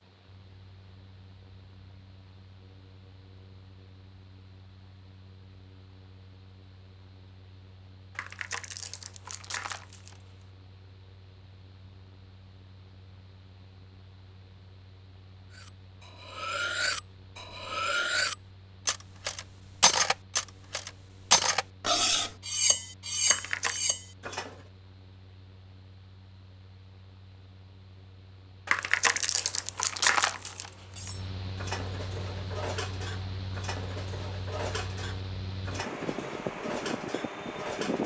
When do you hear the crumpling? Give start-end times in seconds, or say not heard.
8.2-10.2, 23.2-23.9, 28.6-31.1.